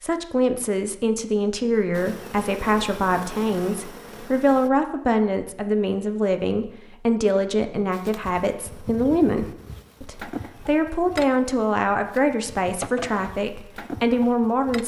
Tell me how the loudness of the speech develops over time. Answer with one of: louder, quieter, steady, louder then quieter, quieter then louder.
steady.